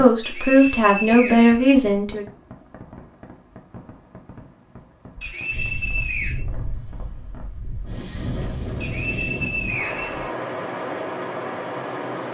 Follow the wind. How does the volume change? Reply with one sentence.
The volume of the wind goes up.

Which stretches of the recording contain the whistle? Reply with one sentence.
You can hear the whistle from 0.2 to 2.2 s, from 5.2 to 6.4 s and from 8.8 to 10.3 s.